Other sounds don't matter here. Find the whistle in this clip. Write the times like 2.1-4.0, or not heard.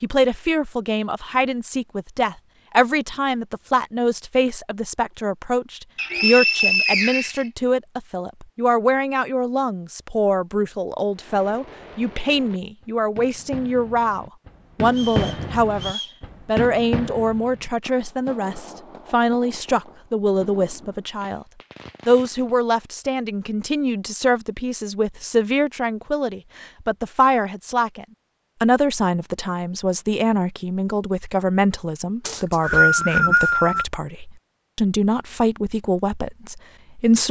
6.0-7.5, 14.9-16.2, 32.2-33.9.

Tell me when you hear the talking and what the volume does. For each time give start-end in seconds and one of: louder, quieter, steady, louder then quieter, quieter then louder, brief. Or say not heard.
0.0-21.4 steady
22.1-37.2 steady.